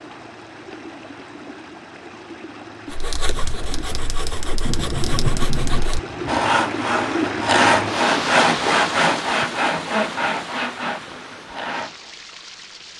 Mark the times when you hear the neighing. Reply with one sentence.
The neighing can't be heard in this clip.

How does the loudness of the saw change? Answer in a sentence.
The volume of the saw goes up, then down.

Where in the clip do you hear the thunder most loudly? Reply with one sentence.
The volume of the thunder peaks at 5 seconds.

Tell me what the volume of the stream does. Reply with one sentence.
The volume of the stream goes up, then down.